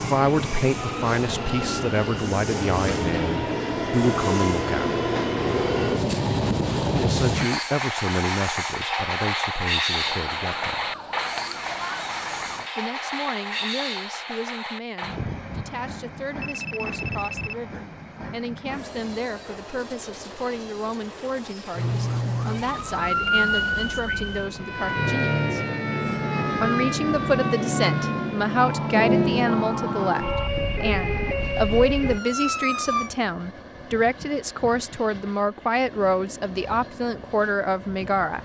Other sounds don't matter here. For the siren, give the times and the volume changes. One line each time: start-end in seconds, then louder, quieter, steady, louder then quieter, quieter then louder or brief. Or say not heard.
9.9-12.7 brief
21.8-33.1 steady.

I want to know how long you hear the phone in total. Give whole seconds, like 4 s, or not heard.
3 s.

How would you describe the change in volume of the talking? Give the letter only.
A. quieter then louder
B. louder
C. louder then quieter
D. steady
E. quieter
A.